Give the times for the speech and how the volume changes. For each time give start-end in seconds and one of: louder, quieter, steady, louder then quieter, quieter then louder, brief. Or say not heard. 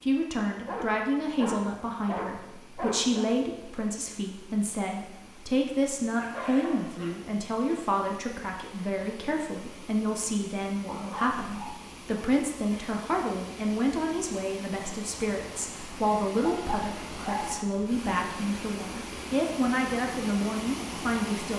0.0-21.5 steady.